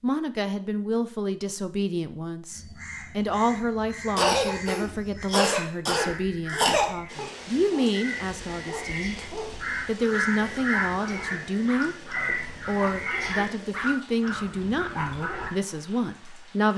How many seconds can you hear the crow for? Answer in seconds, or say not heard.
11 s.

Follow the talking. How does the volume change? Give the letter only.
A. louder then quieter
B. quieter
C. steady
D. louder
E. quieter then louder
C.